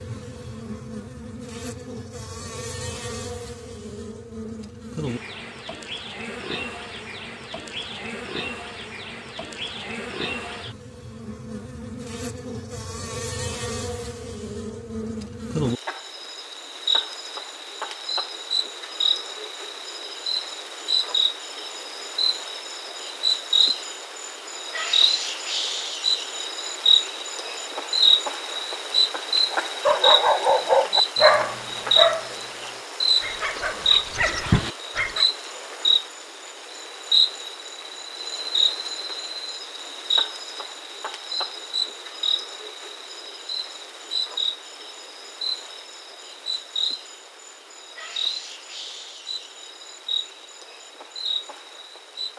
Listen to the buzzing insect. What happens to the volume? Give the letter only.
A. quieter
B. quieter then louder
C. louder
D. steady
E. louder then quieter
E.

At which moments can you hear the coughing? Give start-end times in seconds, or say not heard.
not heard.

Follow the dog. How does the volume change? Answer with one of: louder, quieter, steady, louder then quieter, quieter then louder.
quieter then louder.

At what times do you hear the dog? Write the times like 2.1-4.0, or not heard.
29.5-35.2.